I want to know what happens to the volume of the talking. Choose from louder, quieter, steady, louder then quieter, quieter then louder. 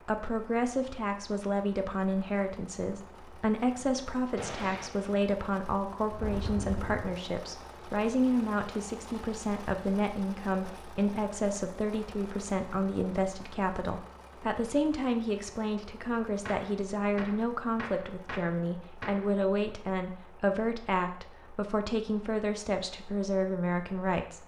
steady.